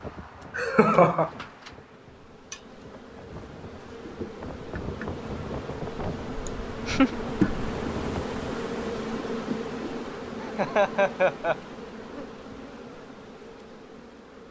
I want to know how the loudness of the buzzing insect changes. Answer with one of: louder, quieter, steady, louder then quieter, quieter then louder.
louder then quieter.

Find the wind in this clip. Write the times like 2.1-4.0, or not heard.
0.0-8.4.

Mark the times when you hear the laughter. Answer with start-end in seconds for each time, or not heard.
0.6-1.3, 6.5-7.2, 10.4-11.6.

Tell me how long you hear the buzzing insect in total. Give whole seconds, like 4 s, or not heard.
14 s.